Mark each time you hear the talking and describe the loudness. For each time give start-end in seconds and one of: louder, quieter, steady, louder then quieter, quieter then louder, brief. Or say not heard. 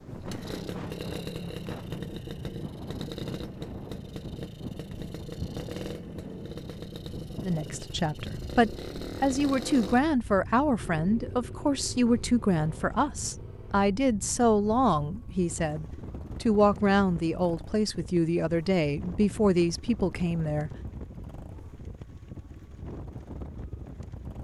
7.4-20.7 steady.